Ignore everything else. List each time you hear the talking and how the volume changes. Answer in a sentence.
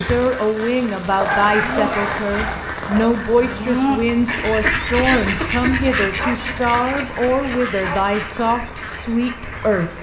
The talking can be heard from 0.1 to 9.9 s, at a steady volume.